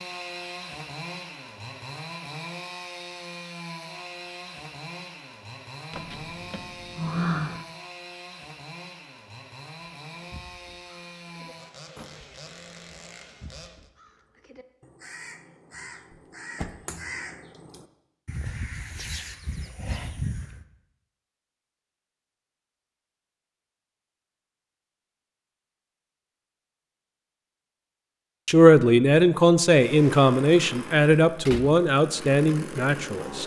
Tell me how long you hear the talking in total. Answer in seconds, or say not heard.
5 s.